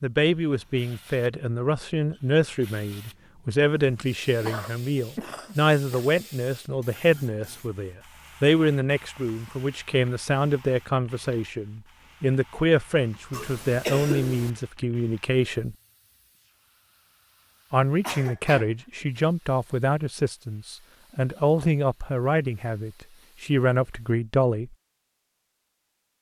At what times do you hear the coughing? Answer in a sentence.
You can hear the coughing from 3.6 to 6.2 s, from 13.3 to 14.5 s and from 18.0 to 18.7 s.